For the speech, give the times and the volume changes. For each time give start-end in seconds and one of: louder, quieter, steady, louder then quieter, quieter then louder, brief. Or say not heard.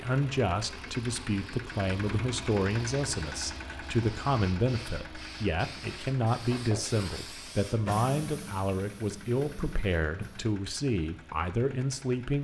0.0-12.3 steady.